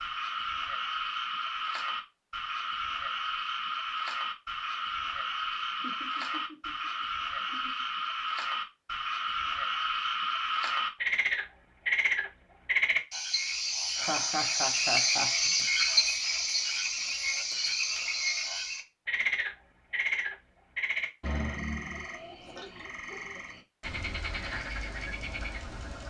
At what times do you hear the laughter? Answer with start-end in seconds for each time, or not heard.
5.5-7.8, 13.9-15.5.